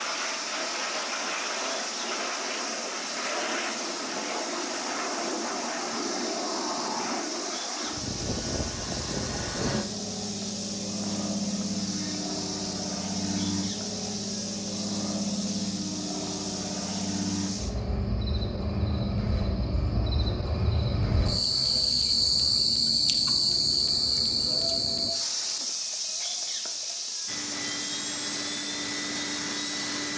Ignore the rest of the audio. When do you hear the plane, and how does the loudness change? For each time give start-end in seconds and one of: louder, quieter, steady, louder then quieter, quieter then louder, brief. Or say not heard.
0.0-25.1 quieter
27.2-30.1 brief.